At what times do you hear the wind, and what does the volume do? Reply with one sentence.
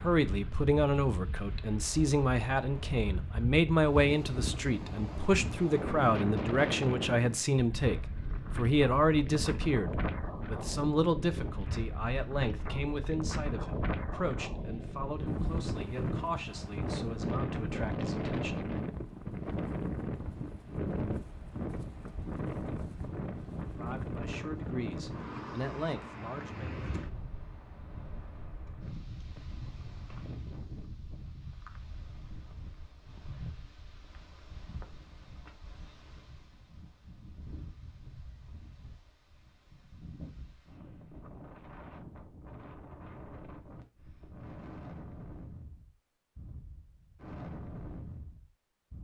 You can hear the wind from 0.0 to 48.9 s, getting quieter.